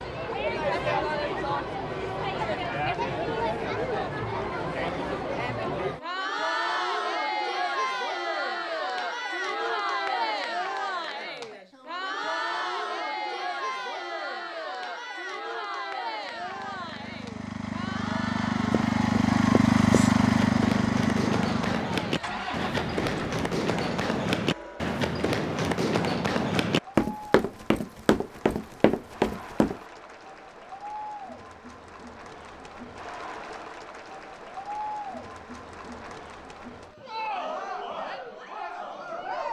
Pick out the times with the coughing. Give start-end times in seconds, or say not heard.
not heard.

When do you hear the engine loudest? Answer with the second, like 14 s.
20 s.